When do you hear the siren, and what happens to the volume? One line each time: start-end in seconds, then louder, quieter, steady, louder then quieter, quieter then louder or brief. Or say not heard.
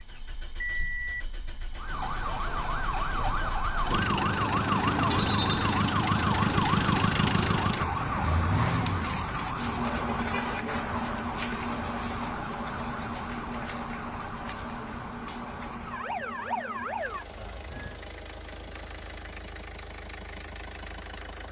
1.7-18.0 quieter.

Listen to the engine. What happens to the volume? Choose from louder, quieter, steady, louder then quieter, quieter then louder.
louder then quieter.